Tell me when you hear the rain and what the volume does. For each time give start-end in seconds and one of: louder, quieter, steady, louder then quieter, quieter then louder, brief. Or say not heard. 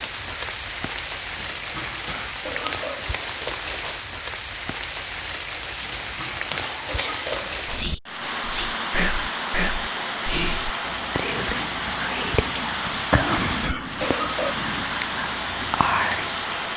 0.0-16.7 steady.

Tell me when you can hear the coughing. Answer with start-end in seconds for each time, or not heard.
1.4-3.1, 5.8-7.6, 12.9-14.6.